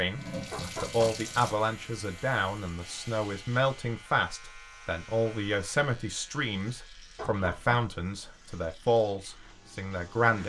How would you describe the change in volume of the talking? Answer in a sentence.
The volume of the talking stays about the same.